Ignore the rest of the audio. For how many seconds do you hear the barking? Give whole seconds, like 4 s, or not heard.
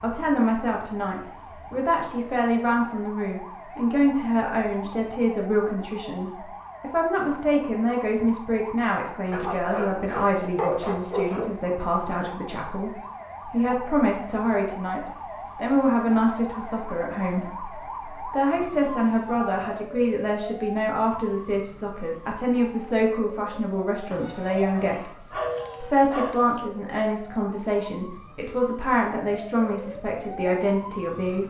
5 s.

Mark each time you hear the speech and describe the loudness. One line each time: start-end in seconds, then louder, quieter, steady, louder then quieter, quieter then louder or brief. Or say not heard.
0.0-31.4 steady.